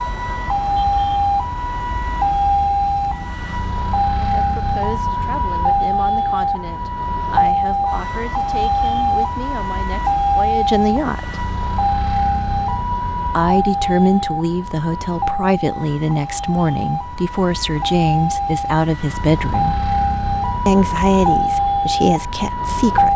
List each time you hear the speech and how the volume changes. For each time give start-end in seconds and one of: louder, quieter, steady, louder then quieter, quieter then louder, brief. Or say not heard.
4.3-11.4 louder
13.2-19.8 steady
20.6-23.1 brief.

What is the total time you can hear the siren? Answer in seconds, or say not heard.
23 s.